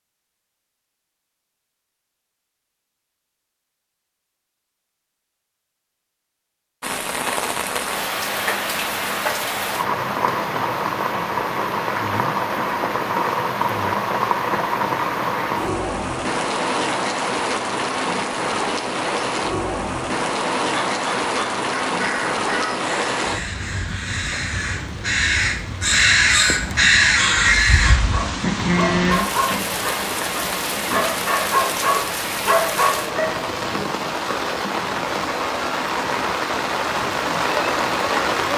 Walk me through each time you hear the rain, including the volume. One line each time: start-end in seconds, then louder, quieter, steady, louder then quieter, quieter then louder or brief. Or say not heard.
6.8-38.5 steady.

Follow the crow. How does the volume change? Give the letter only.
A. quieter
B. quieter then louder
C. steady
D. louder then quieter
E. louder
E.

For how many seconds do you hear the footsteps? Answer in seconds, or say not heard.
not heard.